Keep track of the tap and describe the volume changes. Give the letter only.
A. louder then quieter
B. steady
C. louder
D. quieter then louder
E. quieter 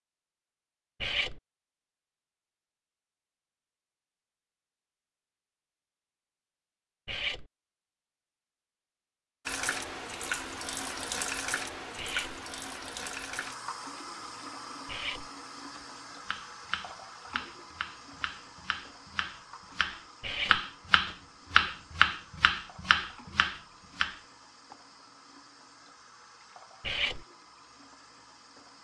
E.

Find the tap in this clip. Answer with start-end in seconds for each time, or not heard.
9.4-28.7.